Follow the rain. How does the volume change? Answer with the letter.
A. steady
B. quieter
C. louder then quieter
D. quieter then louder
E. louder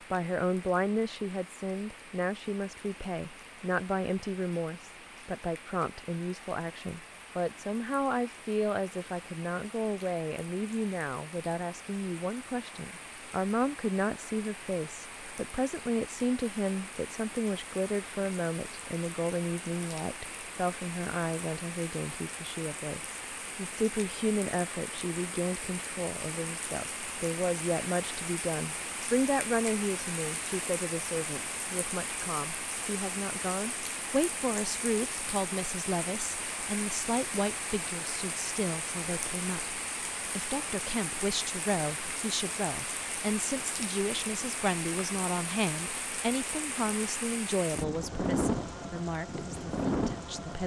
E.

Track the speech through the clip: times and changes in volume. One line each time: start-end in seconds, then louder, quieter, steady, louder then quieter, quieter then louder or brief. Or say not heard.
0.1-50.6 steady.